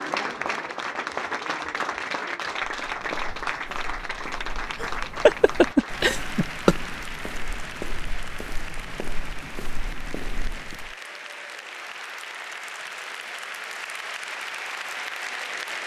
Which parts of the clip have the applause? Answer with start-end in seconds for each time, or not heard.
0.0-15.8.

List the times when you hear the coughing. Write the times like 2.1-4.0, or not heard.
4.8-6.8.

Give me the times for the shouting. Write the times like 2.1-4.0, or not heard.
not heard.